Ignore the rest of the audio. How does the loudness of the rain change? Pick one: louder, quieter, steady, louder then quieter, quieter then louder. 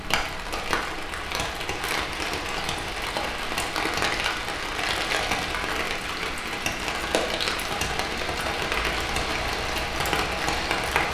steady.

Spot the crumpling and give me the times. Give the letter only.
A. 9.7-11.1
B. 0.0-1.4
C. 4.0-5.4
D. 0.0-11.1
C.